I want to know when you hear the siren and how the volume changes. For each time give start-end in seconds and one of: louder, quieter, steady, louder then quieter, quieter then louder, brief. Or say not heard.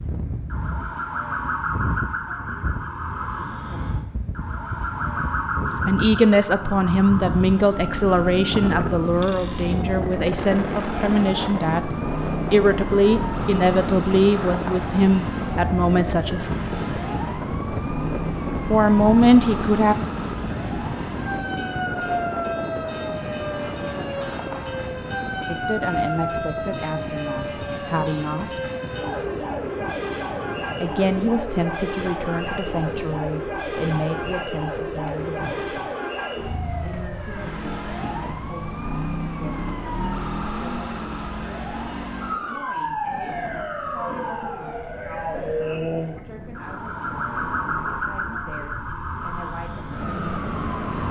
0.0-51.0 steady.